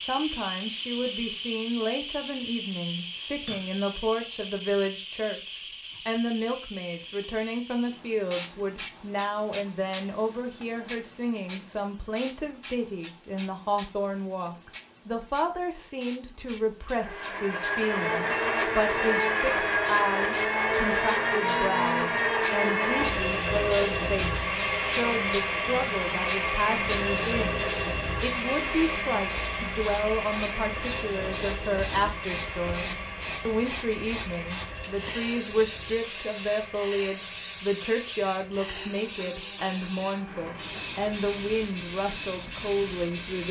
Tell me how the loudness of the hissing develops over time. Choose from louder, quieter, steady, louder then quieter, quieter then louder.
quieter then louder.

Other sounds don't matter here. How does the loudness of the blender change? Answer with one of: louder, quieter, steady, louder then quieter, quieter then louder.
quieter.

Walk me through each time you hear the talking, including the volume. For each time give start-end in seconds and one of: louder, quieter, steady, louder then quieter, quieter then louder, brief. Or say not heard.
0.0-43.4 steady.